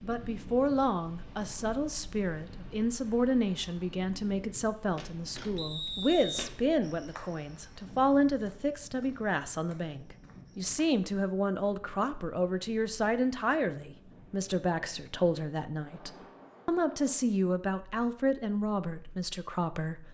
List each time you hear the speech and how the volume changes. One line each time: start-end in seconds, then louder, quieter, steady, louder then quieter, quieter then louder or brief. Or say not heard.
0.0-20.0 steady.